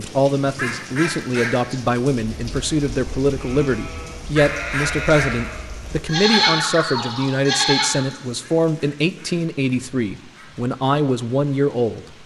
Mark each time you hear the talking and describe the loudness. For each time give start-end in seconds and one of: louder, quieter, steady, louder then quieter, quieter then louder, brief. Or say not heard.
0.0-12.1 steady.